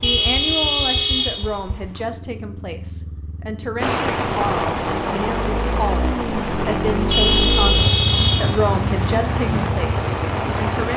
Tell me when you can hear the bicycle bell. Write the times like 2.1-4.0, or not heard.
not heard.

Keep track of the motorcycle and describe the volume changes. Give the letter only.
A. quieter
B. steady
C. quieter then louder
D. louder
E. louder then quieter
D.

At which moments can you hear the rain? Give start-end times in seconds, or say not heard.
3.8-10.9.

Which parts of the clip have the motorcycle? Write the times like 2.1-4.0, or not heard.
0.0-10.9.